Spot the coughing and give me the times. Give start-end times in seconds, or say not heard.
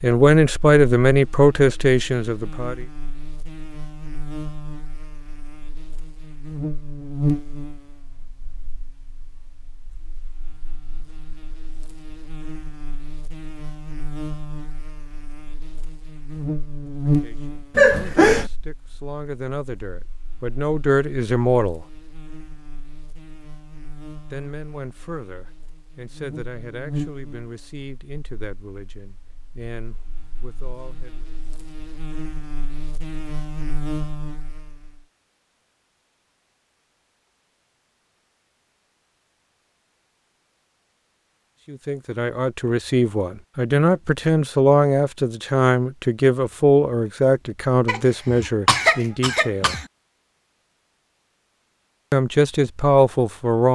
17.8-18.5, 47.9-49.9.